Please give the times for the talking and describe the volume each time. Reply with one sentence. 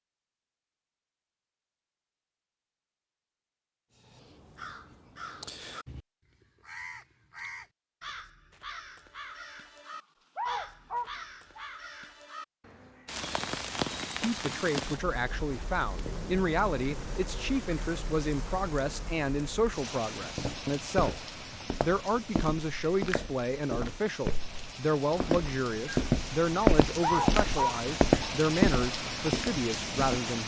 The talking can be heard from 14.2 to 30.4 s, at a steady volume.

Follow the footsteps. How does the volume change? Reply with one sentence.
The volume of the footsteps goes up.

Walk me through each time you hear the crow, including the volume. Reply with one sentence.
You can hear the crow from 4.0 to 13.2 s, at a steady volume.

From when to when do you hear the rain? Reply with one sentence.
The rain can be heard from 13.1 to 30.4 s.